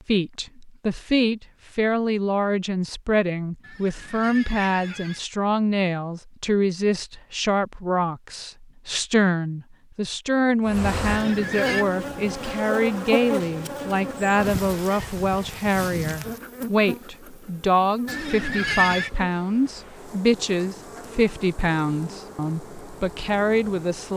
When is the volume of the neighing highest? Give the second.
19 s.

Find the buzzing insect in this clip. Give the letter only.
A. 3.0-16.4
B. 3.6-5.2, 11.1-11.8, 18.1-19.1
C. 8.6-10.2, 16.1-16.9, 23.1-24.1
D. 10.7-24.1
D.